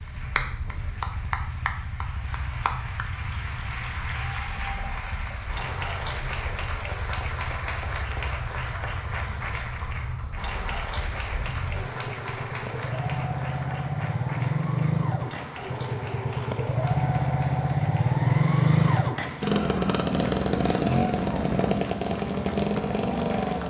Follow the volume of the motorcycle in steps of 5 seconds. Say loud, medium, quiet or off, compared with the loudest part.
quiet, quiet, medium, loud, loud.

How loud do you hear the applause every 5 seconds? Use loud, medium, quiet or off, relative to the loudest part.
loud, loud, loud, medium, medium.